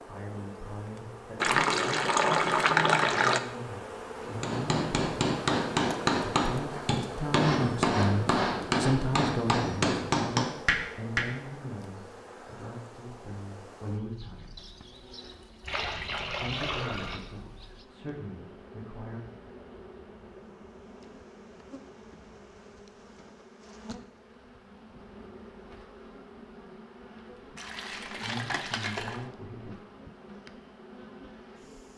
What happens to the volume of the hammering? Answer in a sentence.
The loudness of the hammering stays about the same.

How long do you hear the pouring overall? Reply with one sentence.
The pouring can be heard for 5 seconds in total.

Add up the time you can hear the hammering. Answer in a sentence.
The hammering can be heard for 7 seconds in total.